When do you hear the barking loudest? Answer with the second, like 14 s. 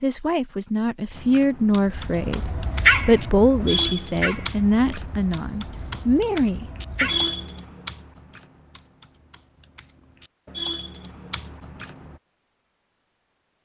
3 s.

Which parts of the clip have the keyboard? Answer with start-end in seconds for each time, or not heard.
1.1-12.2.